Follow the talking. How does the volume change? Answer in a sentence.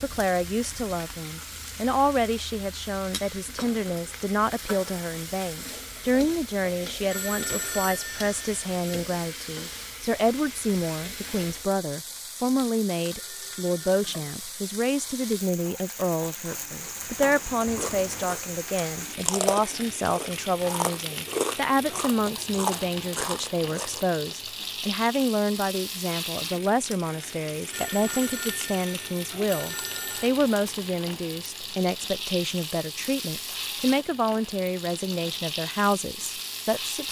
The loudness of the talking stays about the same.